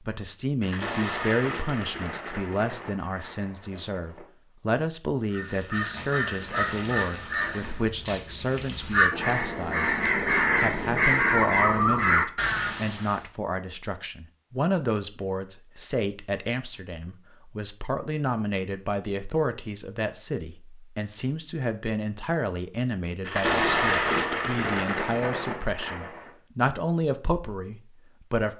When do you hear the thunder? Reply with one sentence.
The thunder can be heard from 0.6 to 4.2 s and from 23.2 to 26.3 s.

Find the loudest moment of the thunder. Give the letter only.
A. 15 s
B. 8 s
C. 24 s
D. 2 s
C.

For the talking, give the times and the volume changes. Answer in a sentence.
You can hear the talking from 0.0 to 28.5 s, at a steady volume.